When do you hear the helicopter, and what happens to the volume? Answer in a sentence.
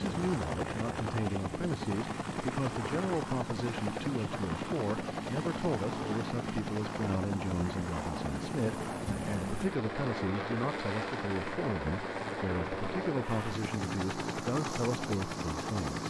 You can hear the helicopter from 0.0 to 16.0 s, at a steady volume.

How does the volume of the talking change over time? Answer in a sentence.
The volume of the talking stays about the same.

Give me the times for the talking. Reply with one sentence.
The talking can be heard from 0.0 to 16.0 s.